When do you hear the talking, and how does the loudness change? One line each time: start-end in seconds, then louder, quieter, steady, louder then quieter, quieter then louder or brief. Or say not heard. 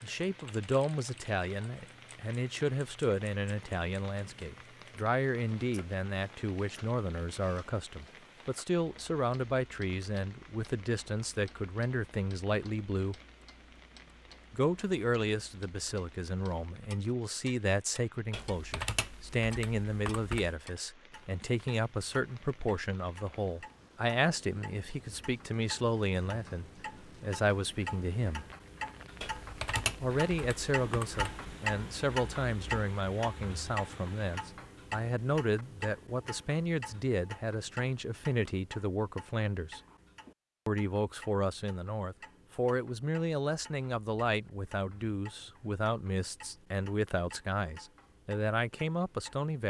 0.0-13.2 steady
14.5-28.4 steady
30.0-39.8 steady
40.6-49.6 steady.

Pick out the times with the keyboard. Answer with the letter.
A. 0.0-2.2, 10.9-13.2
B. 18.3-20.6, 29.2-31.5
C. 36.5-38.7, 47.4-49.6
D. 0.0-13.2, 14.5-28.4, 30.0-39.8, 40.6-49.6
B.